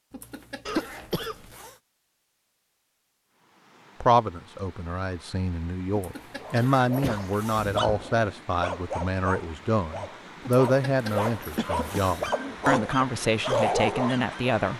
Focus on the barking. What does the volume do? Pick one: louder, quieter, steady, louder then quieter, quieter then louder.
louder.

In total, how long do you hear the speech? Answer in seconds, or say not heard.
11 s.